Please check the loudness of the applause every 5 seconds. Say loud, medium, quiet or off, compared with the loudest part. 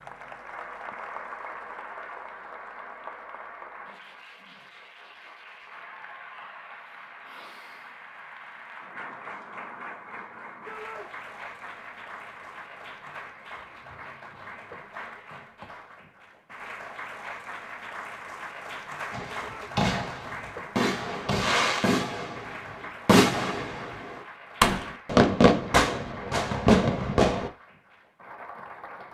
loud, loud, loud, loud, loud, medium.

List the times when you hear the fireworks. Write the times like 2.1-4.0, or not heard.
19.1-27.5.